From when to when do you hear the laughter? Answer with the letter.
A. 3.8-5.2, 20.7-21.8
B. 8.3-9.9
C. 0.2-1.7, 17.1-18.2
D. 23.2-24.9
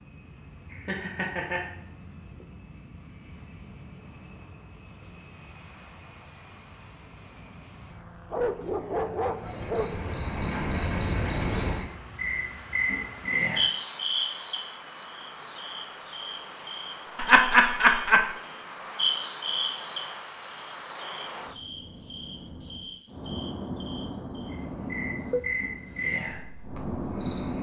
C.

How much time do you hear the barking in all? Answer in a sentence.
You can hear the barking for 2 seconds altogether.